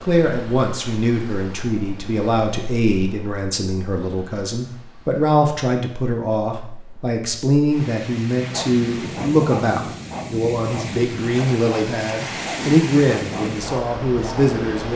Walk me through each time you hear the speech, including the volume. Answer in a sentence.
You can hear the speech from 0.0 to 14.9 s, at a steady volume.